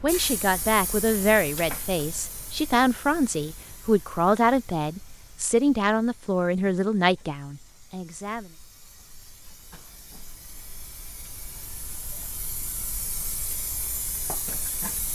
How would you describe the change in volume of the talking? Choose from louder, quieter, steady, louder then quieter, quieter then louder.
steady.